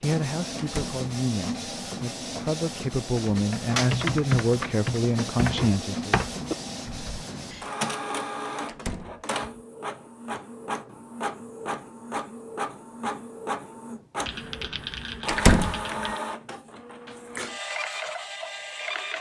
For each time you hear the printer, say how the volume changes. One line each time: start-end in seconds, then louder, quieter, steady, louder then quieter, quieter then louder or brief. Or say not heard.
0.0-19.1 steady.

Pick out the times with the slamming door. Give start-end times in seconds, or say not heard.
0.6-1.0, 8.7-9.2, 15.2-15.8.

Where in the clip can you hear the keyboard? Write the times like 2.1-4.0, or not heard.
3.1-7.2, 14.2-16.2.